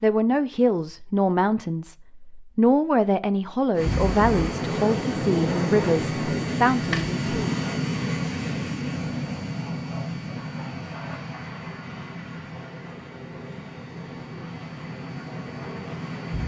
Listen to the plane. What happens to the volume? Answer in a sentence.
The volume of the plane goes down.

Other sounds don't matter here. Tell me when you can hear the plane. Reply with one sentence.
The plane can be heard from 3.8 to 16.4 s.